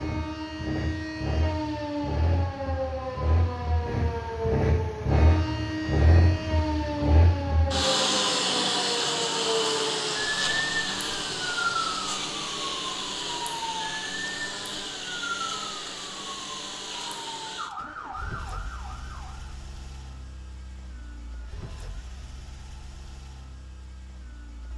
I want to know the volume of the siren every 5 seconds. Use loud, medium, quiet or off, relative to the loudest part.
loud, loud, loud, medium, off.